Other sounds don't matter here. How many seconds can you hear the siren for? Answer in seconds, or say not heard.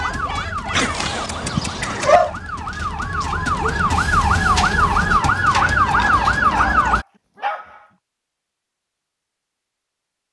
7 s.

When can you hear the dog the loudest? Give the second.
2 s.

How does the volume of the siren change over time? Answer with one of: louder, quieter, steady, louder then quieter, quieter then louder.
louder.